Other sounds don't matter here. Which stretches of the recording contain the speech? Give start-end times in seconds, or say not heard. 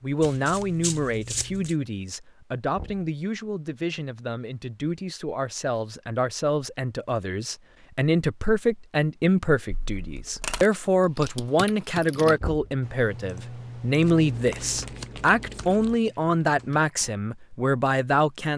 0.0-18.5.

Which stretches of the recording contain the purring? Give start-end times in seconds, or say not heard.
not heard.